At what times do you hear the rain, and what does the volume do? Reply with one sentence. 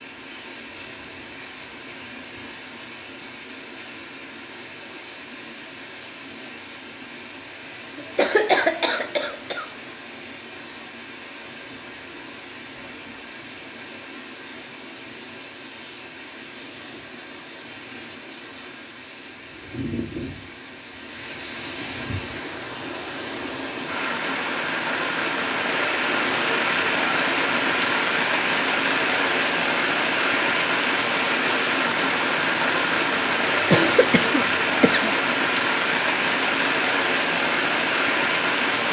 You can hear the rain from 0.0 to 38.8 s, getting louder.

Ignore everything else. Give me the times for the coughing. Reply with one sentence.
The coughing can be heard from 8.0 to 9.7 s and from 33.5 to 35.1 s.